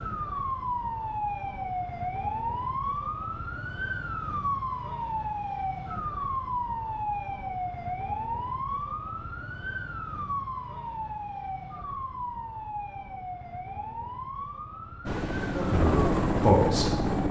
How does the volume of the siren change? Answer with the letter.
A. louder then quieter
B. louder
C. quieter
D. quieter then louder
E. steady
C.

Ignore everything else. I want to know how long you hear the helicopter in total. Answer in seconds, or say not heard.
2 s.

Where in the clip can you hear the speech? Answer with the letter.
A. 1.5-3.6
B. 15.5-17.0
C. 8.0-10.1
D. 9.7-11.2
B.